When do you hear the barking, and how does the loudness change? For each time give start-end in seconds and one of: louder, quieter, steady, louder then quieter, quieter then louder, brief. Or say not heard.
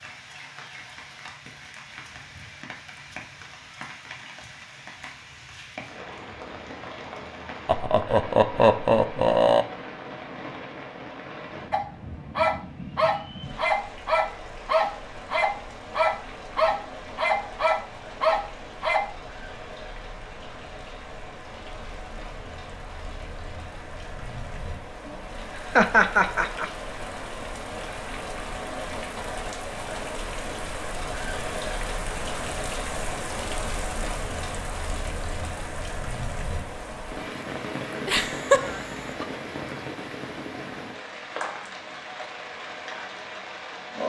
11.7-19.1 steady.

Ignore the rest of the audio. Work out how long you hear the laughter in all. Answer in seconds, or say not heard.
4 s.